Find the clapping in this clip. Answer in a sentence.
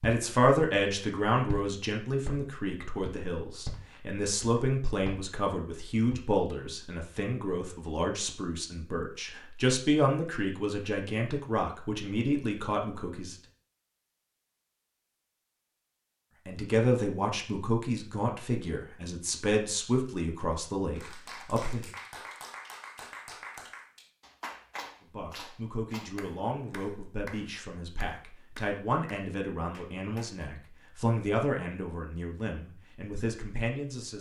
You can hear the clapping from 20.9 to 30.5 s.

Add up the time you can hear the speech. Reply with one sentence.
The speech can be heard for 28 seconds in total.